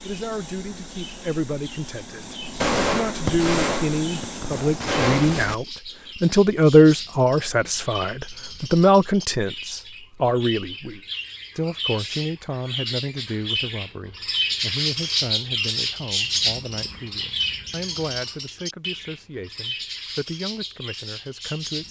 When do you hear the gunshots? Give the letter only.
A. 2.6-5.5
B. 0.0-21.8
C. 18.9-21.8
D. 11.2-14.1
A.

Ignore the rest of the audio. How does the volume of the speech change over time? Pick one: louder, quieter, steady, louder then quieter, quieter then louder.
louder then quieter.